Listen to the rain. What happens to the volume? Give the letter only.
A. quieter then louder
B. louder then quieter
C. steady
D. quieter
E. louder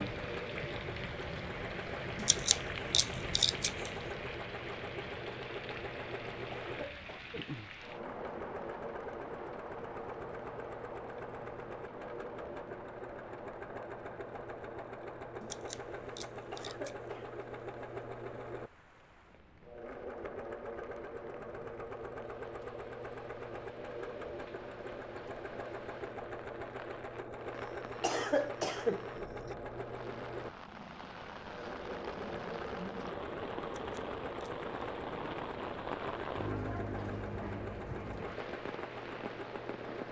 A.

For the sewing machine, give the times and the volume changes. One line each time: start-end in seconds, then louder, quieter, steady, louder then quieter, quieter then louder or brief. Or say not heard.
0.0-40.0 steady.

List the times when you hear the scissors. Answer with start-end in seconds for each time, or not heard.
2.1-3.9, 15.4-16.9, 33.8-34.6.